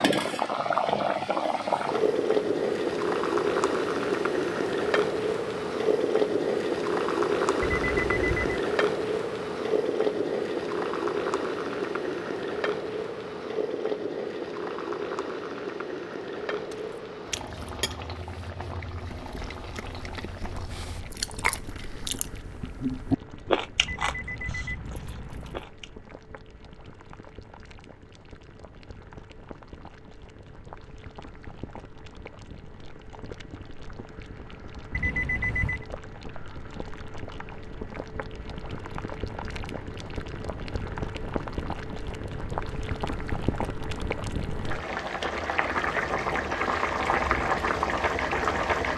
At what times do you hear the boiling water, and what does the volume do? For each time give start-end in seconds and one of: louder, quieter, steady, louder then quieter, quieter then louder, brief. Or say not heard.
0.0-48.9 quieter then louder.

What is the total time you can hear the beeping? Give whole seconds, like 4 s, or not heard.
4 s.